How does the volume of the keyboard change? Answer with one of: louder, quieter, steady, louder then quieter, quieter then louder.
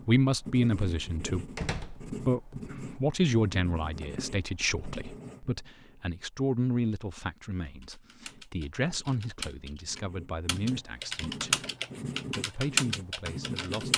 louder.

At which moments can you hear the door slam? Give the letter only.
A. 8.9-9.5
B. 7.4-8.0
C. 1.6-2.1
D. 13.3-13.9
C.